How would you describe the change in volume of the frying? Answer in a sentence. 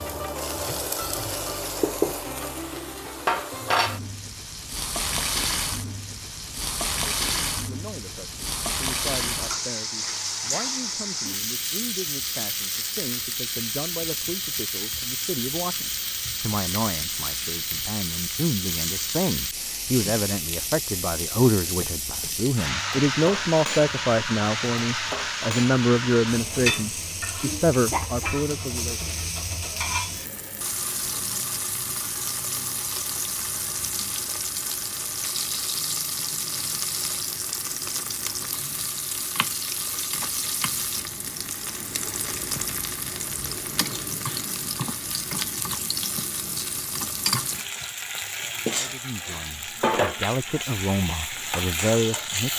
The volume of the frying stays about the same.